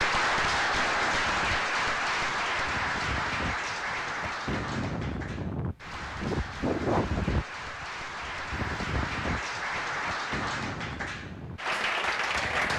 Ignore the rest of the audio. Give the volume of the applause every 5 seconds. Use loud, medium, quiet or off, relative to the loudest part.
loud, medium, loud.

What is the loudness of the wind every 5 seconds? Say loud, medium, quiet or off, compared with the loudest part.
medium, loud, medium.